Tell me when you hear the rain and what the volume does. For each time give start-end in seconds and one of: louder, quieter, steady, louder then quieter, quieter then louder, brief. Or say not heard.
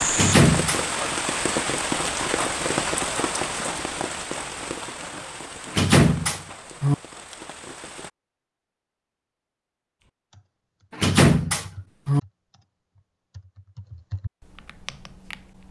0.0-8.1 quieter.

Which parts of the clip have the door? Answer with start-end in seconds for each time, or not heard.
0.1-0.8, 5.7-7.0, 10.9-12.2.